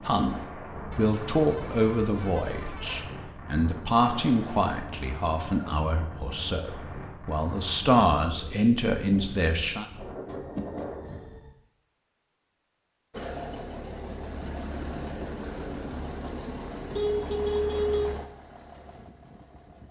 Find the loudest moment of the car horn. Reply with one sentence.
The loudest moment of the car horn is at 18 seconds.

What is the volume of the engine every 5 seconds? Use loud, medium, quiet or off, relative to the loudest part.
off, off, loud, loud.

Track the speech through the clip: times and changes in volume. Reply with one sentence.
You can hear the speech from 0.0 to 9.8 s, getting quieter then louder.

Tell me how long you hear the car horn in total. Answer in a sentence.
The car horn can be heard for 5 seconds in total.